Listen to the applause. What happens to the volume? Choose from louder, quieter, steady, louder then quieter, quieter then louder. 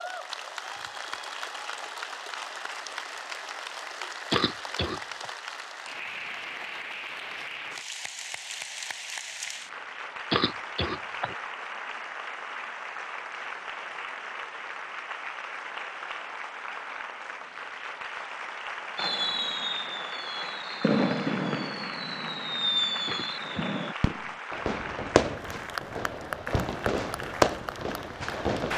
steady.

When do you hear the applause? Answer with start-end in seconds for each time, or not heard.
0.0-28.7.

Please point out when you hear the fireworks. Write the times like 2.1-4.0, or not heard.
18.9-28.7.